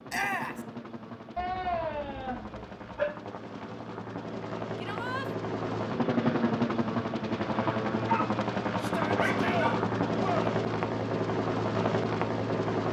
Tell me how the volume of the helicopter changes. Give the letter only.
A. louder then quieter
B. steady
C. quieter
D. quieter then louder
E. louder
E.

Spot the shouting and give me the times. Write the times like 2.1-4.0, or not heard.
0.1-0.6, 4.8-5.3, 8.8-10.5.